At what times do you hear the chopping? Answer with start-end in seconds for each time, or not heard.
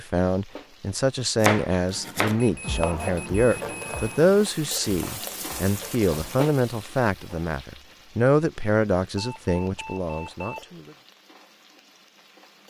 1.4-6.4.